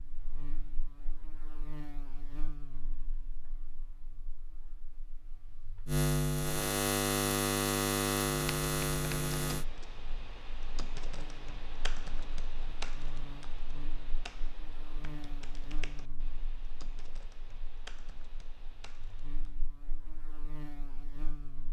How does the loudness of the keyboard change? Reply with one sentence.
The loudness of the keyboard goes down.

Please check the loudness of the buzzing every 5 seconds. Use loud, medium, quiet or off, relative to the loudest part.
quiet, loud, quiet, quiet, quiet.